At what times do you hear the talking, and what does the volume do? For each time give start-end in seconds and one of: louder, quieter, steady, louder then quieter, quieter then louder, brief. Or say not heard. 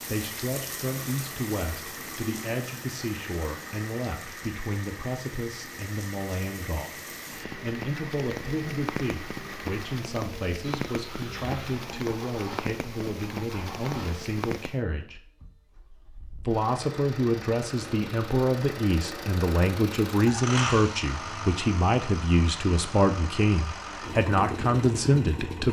0.0-15.2 steady
16.4-25.6 steady.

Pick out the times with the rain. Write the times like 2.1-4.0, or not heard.
0.0-14.8.